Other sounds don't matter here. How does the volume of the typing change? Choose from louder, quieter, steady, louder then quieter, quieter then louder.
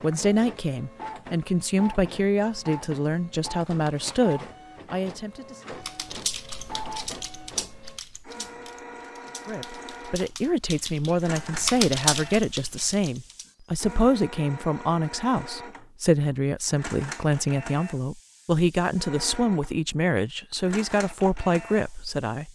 quieter then louder.